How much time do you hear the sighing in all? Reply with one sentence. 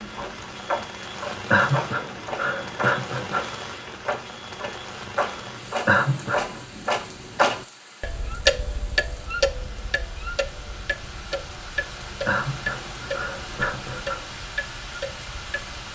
The sighing can be heard for 5 seconds in total.